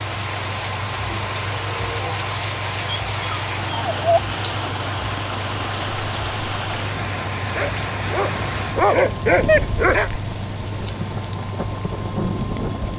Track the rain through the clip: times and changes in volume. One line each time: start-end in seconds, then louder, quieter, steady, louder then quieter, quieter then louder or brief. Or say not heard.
0.0-12.9 steady.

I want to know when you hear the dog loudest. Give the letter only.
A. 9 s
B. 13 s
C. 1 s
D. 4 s
A.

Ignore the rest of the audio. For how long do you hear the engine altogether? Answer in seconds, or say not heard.
13 s.